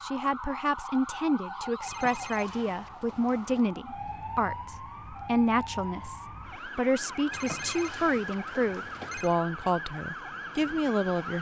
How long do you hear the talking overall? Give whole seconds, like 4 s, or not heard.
11 s.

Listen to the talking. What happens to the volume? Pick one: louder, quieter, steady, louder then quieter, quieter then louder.
steady.